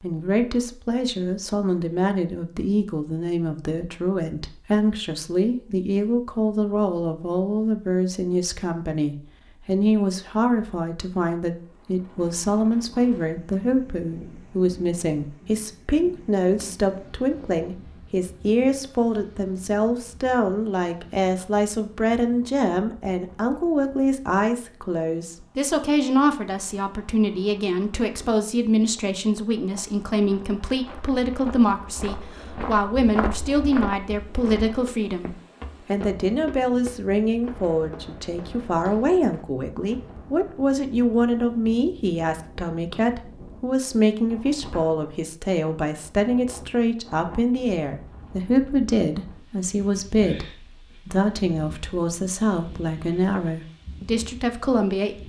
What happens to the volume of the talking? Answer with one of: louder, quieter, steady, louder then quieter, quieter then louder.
steady.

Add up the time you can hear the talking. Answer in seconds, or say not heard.
55 s.